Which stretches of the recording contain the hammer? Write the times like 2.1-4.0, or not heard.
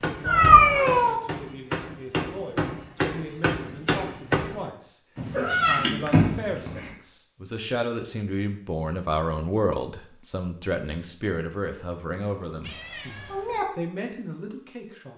0.0-4.7.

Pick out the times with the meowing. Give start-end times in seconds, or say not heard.
0.2-1.1, 5.2-6.9, 12.6-13.7.